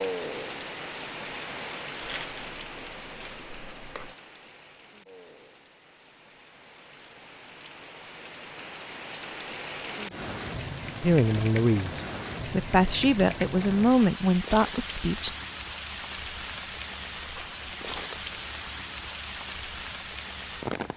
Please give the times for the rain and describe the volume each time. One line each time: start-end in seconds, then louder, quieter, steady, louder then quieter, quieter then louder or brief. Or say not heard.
0.0-20.9 quieter then louder.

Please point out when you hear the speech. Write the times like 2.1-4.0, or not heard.
11.0-15.3.